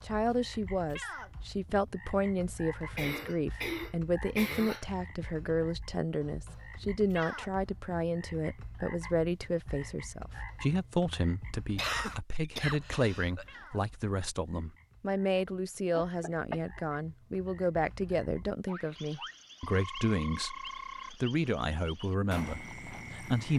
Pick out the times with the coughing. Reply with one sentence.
The coughing can be heard from 3.0 to 4.8 s, from 11.8 to 13.4 s and from 15.9 to 16.8 s.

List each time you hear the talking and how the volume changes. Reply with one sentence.
The talking can be heard from 0.0 to 23.5 s, at a steady volume.